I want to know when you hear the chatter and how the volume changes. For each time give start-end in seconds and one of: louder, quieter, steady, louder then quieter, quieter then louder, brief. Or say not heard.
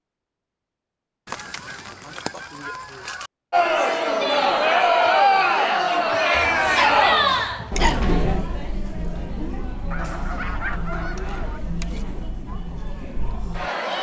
3.5-13.9 quieter.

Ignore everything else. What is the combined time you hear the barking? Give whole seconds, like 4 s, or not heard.
2 s.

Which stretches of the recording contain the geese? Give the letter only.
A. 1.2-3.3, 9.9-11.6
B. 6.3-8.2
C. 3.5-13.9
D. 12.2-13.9
A.